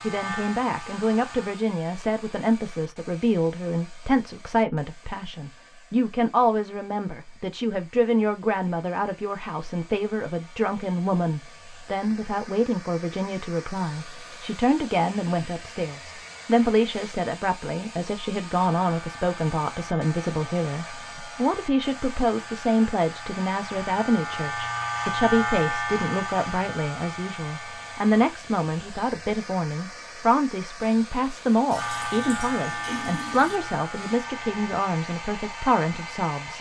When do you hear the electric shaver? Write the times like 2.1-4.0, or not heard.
0.0-1.6, 18.5-28.4, 31.7-36.5.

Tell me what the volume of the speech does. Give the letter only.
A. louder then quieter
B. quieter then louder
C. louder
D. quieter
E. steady
E.